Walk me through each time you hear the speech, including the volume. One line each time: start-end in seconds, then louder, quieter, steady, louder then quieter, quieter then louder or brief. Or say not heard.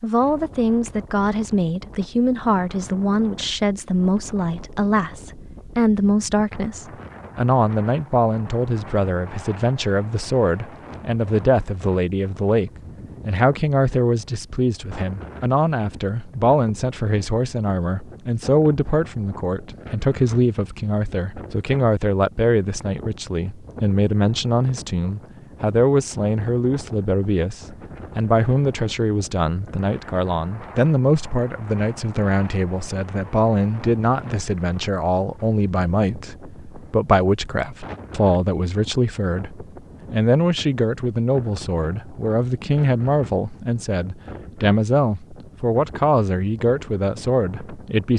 0.0-48.1 steady.